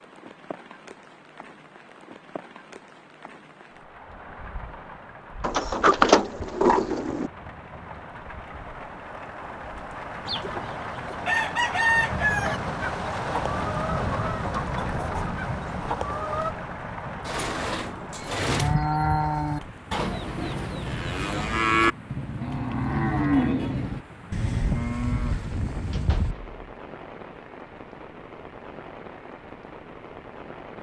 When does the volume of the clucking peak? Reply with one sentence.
The loudest moment of the clucking is at 12 seconds.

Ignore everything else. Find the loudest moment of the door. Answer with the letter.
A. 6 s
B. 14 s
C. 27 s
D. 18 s
A.